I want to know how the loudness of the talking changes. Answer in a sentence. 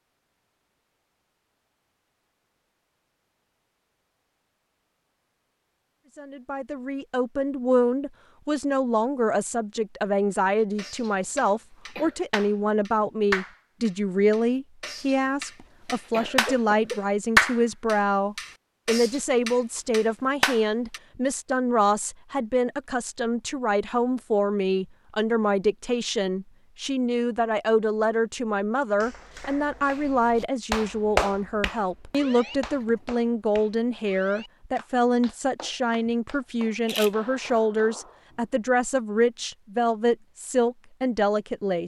The loudness of the talking stays about the same.